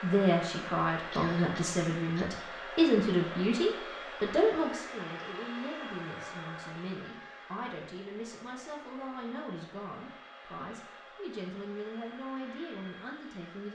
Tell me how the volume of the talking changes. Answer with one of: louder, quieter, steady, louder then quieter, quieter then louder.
quieter.